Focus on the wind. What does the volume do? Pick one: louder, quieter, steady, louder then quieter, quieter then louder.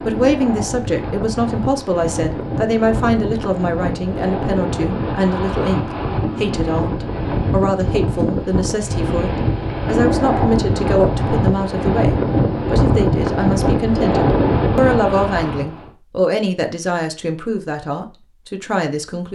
louder.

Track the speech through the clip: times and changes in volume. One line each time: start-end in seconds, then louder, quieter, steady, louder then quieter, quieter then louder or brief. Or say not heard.
0.0-19.2 steady.